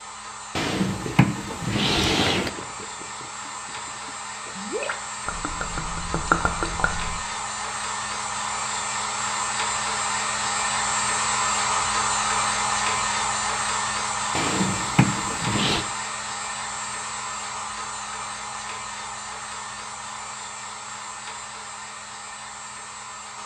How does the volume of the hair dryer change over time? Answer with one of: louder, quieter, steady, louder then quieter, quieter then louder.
louder then quieter.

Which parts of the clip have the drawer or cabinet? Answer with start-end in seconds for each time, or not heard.
0.6-2.5, 14.3-15.8.